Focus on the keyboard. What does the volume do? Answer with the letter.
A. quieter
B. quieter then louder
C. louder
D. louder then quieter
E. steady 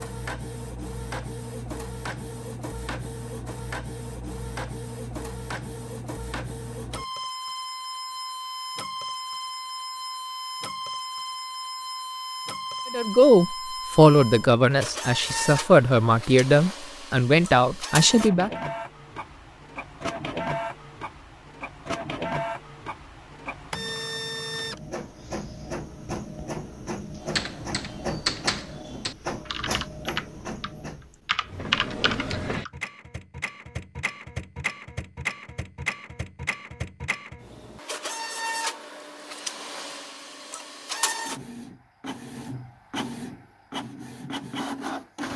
B.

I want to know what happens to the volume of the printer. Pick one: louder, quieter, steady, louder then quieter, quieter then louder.
steady.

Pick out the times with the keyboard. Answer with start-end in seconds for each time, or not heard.
27.2-32.7.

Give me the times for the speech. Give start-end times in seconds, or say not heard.
12.9-18.5.